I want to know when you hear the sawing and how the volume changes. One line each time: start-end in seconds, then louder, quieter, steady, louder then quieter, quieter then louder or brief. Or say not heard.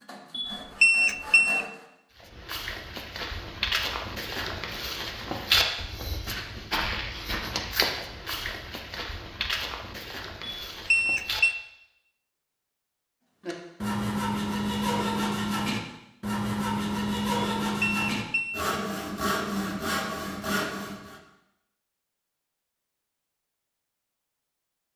0.0-1.9 brief
13.4-21.2 steady.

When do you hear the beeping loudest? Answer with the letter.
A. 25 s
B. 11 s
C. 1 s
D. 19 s
C.